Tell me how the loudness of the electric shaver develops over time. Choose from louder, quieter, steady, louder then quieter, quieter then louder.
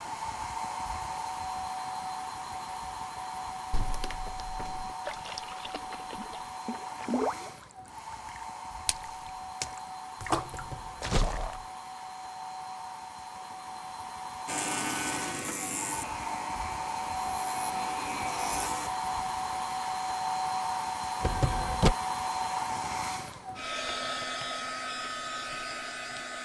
quieter then louder.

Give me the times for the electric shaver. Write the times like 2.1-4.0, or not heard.
14.4-18.9.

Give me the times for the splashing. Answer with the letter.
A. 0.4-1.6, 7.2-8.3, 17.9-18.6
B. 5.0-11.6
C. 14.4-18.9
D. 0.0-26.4
B.